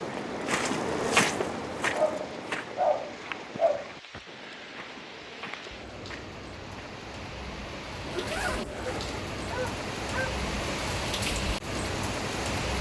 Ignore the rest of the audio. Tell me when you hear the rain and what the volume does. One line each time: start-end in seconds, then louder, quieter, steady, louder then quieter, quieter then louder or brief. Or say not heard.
0.0-12.7 louder.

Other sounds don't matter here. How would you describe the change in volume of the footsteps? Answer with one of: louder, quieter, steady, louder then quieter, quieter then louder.
quieter.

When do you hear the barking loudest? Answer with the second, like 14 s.
3 s.